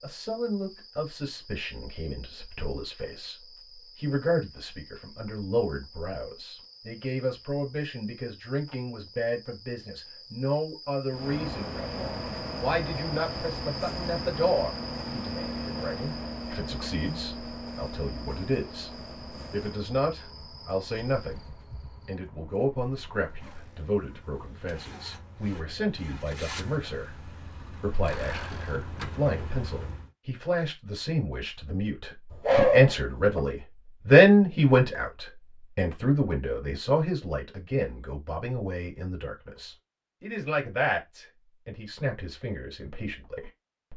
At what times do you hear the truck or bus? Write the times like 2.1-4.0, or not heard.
11.1-30.1.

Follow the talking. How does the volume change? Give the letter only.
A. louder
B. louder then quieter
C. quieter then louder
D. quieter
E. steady
B.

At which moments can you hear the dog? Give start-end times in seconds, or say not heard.
32.3-33.4.